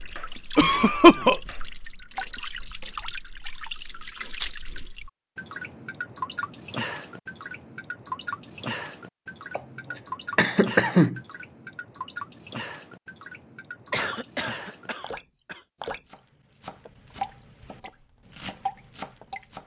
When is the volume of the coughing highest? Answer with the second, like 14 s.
1 s.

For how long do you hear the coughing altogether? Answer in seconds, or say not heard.
4 s.